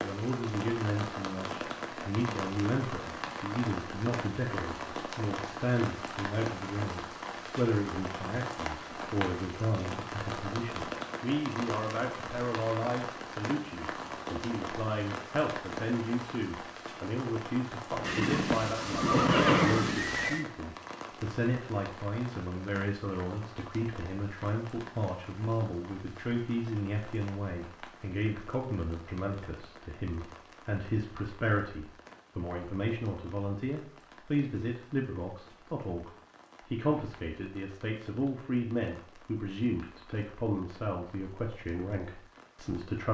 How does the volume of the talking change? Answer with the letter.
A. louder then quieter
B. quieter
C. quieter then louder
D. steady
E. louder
D.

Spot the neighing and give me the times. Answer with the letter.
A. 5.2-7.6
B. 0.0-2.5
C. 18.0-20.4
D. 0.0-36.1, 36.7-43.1
C.